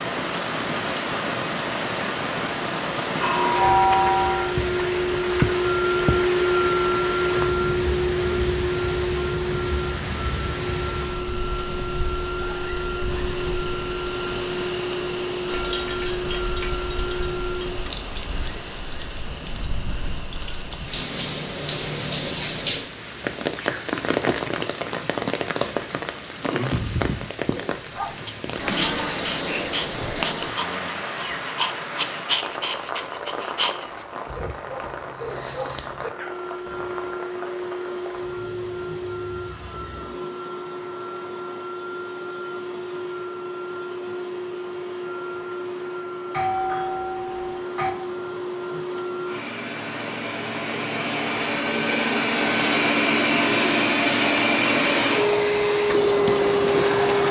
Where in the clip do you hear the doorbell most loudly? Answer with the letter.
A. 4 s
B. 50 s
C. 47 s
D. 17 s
A.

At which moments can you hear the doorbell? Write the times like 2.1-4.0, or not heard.
3.2-4.5, 46.3-47.9.